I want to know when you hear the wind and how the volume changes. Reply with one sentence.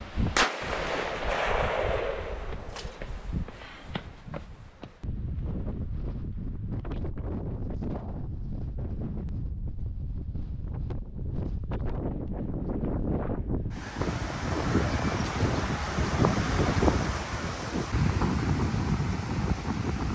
You can hear the wind from 0.0 to 20.0 s, getting louder.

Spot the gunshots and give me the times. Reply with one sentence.
You can hear the gunshots from 0.3 to 2.9 s.